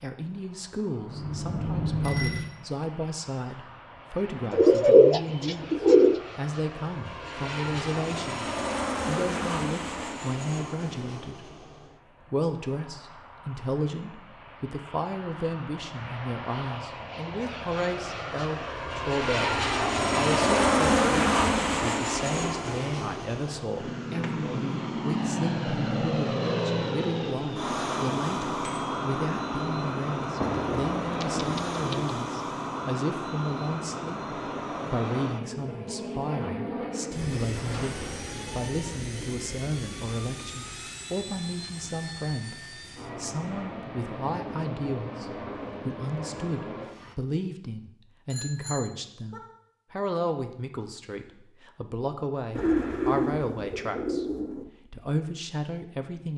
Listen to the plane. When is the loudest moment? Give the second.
21 s.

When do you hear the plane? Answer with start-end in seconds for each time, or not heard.
0.3-47.1.